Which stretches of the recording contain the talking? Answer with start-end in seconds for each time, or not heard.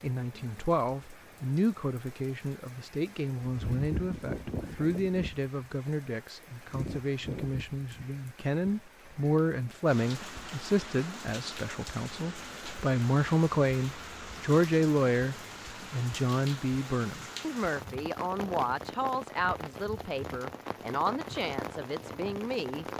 0.0-22.9.